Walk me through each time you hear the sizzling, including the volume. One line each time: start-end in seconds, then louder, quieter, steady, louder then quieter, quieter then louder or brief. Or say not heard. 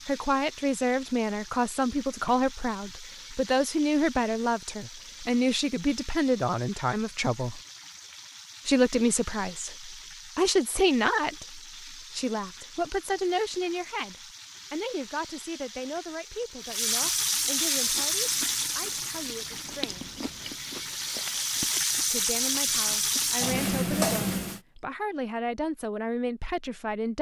0.0-24.6 louder.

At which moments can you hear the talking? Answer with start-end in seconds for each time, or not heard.
0.1-7.6, 8.7-20.1, 22.1-27.1.